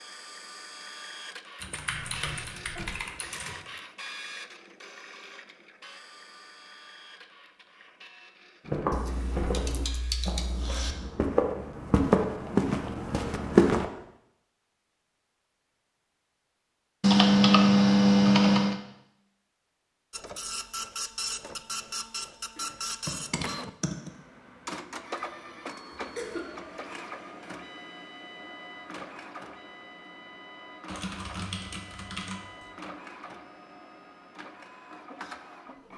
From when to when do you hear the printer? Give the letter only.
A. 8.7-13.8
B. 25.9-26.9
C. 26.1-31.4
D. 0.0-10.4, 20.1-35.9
D.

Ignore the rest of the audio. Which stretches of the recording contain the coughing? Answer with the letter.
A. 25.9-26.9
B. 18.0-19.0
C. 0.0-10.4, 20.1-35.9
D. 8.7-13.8
A.